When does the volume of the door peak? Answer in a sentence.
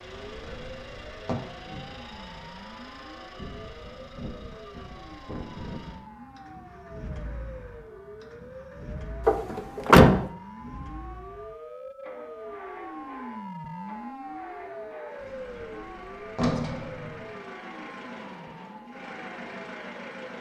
The loudest moment of the door is at 10 seconds.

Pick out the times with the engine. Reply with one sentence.
You can hear the engine from 0.0 to 20.3 s.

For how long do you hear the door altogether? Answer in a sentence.
You can hear the door for 4 seconds altogether.